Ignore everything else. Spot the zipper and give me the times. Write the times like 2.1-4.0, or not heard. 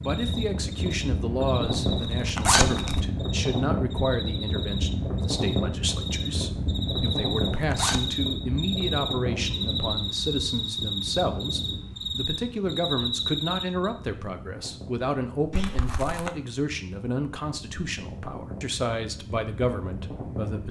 1.9-3.0, 7.0-8.0, 15.5-16.3.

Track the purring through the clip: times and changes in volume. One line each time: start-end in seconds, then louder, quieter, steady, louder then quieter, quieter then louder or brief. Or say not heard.
not heard.